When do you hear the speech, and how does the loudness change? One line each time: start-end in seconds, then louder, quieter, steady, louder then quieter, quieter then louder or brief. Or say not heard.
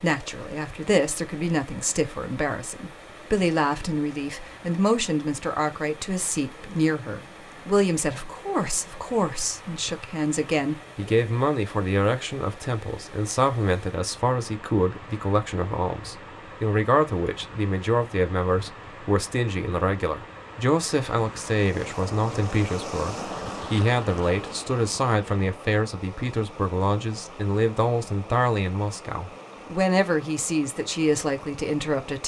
0.0-32.2 steady.